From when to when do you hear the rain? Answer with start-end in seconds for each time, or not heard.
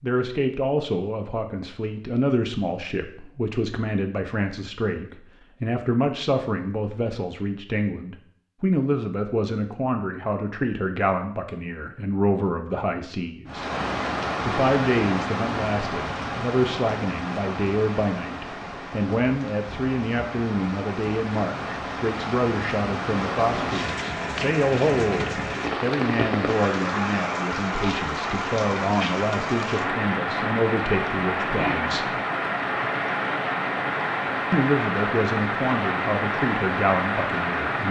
13.4-37.8.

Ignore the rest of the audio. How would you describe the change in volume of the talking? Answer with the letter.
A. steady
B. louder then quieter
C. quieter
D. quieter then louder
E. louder
A.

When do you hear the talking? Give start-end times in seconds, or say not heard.
0.0-13.7, 14.4-32.1, 34.5-37.8.